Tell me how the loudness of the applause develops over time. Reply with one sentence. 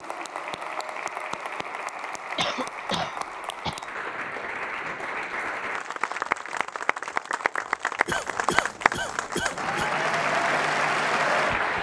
The volume of the applause goes up.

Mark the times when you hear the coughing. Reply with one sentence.
You can hear the coughing from 2.4 to 3.9 s and from 8.1 to 9.9 s.